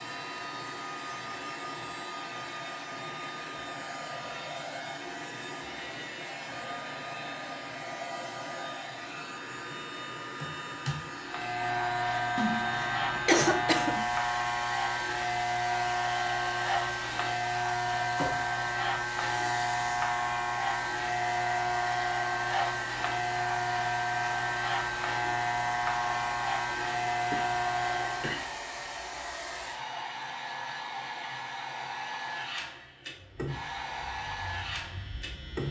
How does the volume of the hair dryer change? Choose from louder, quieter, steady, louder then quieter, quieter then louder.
steady.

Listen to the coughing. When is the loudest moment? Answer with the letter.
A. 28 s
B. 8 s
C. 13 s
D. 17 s
C.